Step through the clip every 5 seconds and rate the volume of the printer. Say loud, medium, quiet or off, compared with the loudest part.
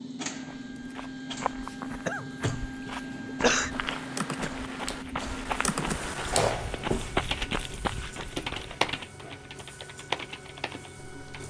loud, medium, medium.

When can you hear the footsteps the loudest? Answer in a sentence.
The volume of the footsteps peaks at 7 seconds.